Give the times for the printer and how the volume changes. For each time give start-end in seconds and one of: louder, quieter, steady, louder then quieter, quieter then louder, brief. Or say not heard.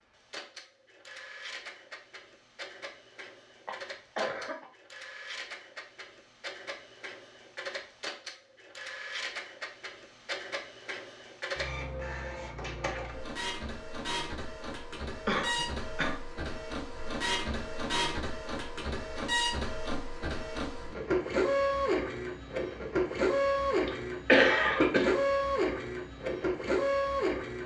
0.0-27.6 louder.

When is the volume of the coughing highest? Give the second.
24 s.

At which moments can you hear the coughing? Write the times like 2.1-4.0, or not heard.
3.6-4.7, 15.2-16.1, 23.9-25.1.